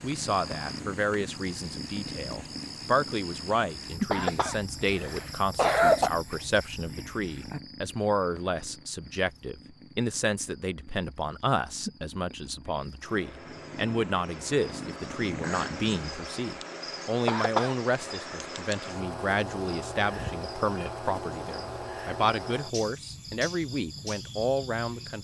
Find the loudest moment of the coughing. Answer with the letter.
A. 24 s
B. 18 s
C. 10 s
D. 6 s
D.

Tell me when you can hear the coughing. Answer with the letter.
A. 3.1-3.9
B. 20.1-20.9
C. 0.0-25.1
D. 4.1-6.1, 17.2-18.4
D.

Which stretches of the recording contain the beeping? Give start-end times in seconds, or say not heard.
20.1-20.9.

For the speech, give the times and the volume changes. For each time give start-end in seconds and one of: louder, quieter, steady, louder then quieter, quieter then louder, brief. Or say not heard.
0.0-25.1 steady.